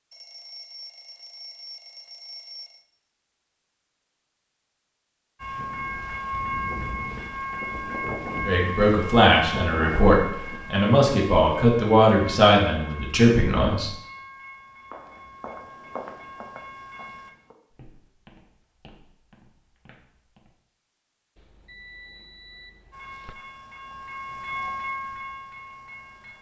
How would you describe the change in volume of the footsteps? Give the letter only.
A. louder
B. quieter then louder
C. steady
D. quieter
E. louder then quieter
D.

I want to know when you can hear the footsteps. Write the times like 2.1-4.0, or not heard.
14.9-20.6.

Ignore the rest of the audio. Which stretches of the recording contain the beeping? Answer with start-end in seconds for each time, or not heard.
0.1-2.9, 21.4-23.4.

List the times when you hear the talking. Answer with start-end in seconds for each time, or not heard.
8.4-13.9.